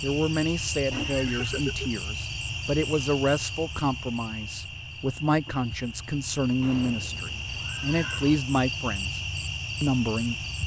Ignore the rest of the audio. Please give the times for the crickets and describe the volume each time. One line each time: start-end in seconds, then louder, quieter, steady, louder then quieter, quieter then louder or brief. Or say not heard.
0.0-10.6 quieter then louder.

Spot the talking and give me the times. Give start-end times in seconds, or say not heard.
0.0-9.2, 9.8-10.3.